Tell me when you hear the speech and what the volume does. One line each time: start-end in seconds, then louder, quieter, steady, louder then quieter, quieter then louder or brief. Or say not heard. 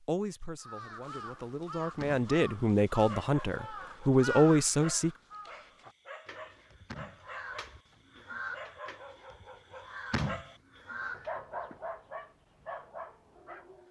0.0-5.1 louder.